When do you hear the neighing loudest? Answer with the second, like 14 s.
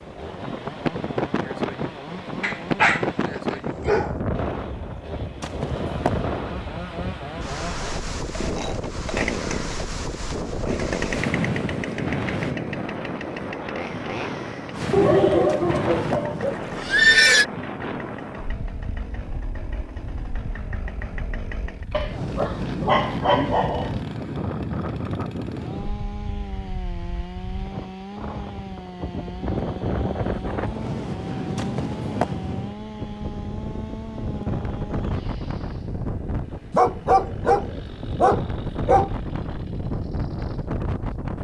17 s.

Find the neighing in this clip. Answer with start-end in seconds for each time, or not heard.
5.4-6.1, 15.5-17.4, 31.6-32.3.